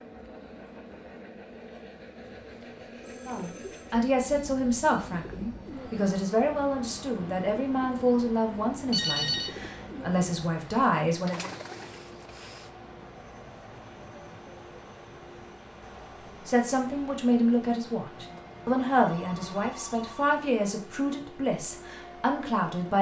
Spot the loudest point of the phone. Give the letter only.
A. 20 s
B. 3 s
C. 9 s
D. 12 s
C.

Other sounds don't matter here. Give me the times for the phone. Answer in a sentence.
You can hear the phone from 2.2 to 3.9 s, from 8.8 to 9.6 s and from 18.8 to 20.4 s.